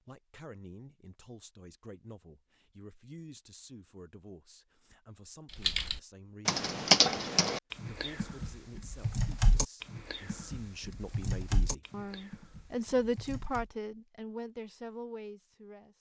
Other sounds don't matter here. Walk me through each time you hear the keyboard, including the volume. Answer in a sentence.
The keyboard can be heard from 5.5 to 13.7 s, getting quieter.